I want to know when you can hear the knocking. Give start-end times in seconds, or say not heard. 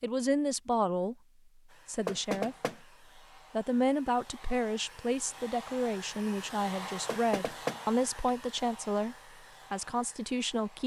2.0-2.8, 7.0-7.8.